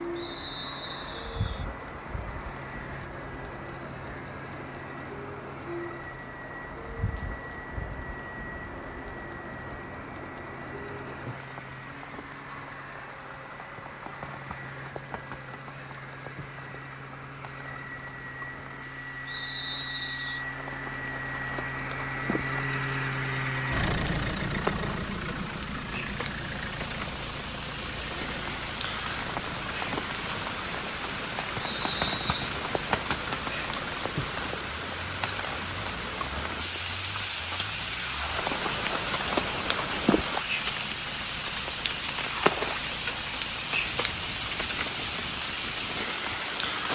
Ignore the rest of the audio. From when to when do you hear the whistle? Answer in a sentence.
You can hear the whistle from 0.1 to 1.5 s, from 19.2 to 20.4 s and from 31.6 to 32.4 s.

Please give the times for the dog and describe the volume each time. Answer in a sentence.
The dog can't be heard in this clip.